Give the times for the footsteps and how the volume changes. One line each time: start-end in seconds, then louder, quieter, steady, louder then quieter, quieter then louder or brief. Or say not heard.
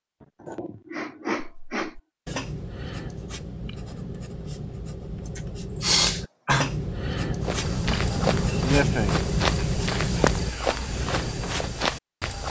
7.4-12.4 steady.